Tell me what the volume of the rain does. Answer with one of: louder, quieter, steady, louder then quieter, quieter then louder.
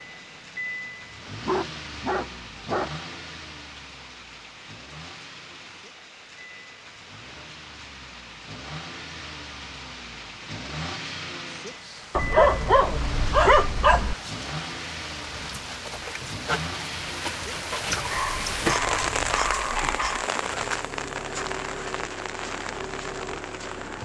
louder.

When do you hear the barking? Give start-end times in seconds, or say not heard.
1.4-2.9, 12.2-14.2, 18.1-20.3.